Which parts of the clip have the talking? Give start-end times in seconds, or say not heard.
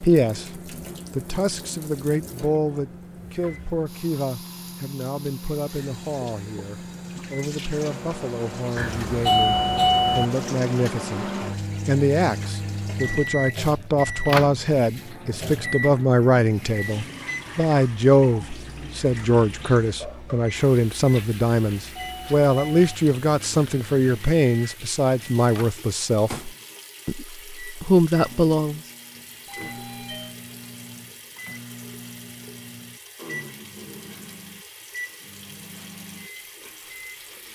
0.0-28.8.